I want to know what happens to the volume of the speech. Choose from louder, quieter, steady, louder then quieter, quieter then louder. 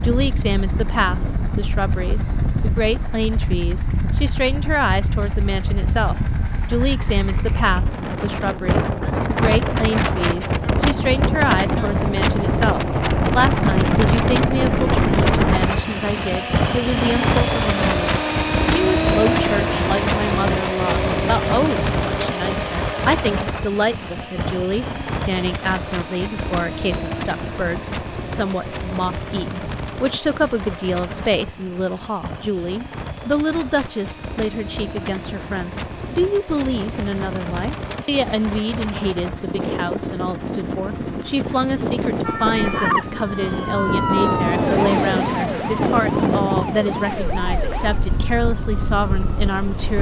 steady.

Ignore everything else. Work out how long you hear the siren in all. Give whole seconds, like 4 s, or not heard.
8 s.